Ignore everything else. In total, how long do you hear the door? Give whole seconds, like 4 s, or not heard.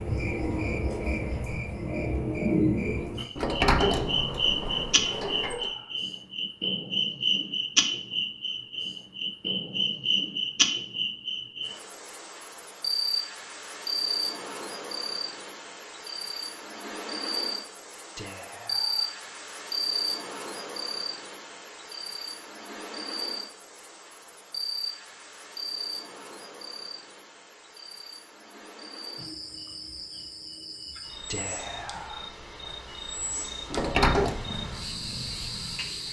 3 s.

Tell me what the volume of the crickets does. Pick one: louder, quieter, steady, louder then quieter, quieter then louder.
quieter.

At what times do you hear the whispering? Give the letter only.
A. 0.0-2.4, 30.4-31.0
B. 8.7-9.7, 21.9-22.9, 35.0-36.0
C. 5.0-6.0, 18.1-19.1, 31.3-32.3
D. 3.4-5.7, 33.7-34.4
C.